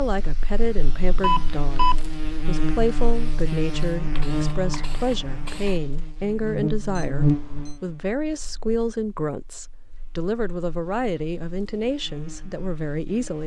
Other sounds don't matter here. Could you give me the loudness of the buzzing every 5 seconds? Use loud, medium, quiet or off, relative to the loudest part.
loud, loud, quiet.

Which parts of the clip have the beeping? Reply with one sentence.
The beeping can be heard from 1.2 to 1.9 s and from 7.0 to 7.8 s.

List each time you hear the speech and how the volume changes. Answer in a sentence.
The speech can be heard from 0.0 to 13.4 s, at a steady volume.